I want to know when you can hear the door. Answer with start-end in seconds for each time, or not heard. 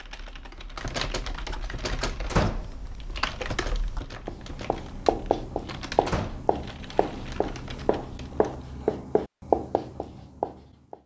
2.2-2.8, 6.0-6.5.